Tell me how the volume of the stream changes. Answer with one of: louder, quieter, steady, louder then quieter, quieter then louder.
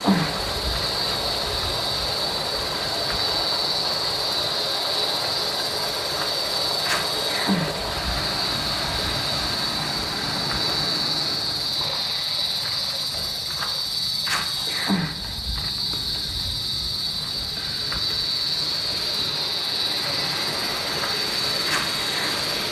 quieter then louder.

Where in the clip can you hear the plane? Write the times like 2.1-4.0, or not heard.
not heard.